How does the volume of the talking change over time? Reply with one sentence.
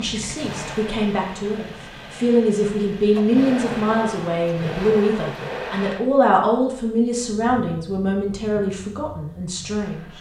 The volume of the talking goes up, then down.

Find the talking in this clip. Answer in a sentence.
The talking can be heard from 0.0 to 10.1 s.